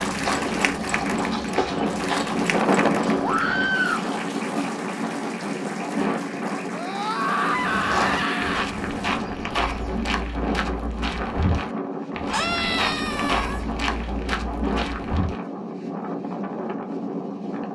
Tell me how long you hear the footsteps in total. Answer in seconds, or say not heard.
12 s.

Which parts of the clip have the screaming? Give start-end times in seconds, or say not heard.
3.2-4.0, 6.7-8.7, 12.3-13.7.